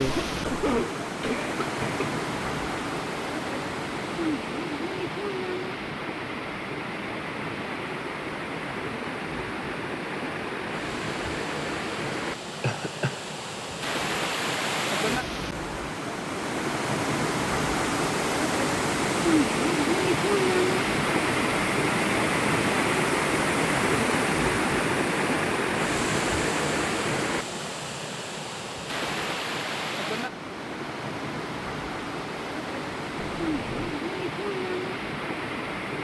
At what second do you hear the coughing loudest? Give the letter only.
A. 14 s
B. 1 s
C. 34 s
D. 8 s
B.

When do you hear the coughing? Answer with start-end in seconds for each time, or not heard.
0.1-2.0, 12.6-13.2, 33.1-34.0.